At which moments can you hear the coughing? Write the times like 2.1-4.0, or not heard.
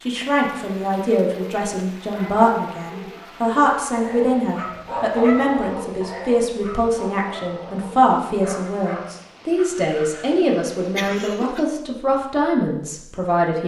10.9-11.7.